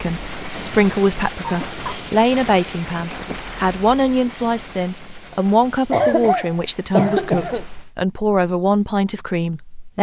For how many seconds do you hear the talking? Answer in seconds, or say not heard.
10 s.